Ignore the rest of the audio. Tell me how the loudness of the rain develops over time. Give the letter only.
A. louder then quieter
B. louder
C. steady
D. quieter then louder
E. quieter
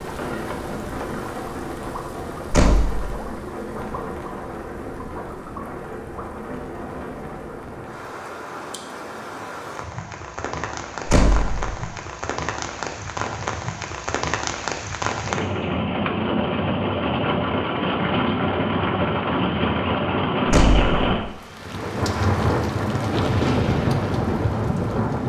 B.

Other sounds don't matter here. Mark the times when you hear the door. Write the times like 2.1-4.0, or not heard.
2.5-3.1, 11.1-11.7, 20.4-21.2.